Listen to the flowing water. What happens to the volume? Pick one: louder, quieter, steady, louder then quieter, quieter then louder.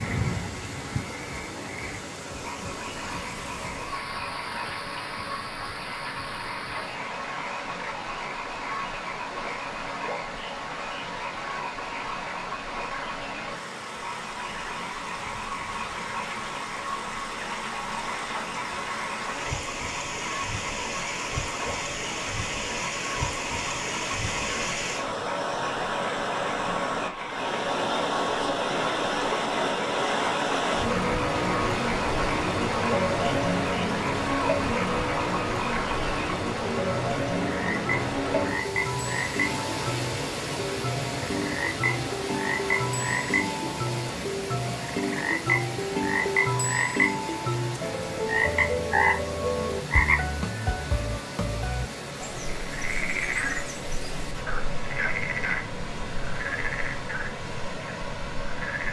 louder then quieter.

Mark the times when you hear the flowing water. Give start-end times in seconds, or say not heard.
0.0-58.8.